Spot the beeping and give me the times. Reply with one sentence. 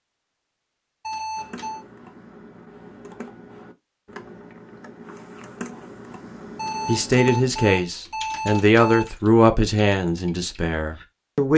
The beeping can be heard from 1.0 to 1.9 s and from 6.5 to 9.2 s.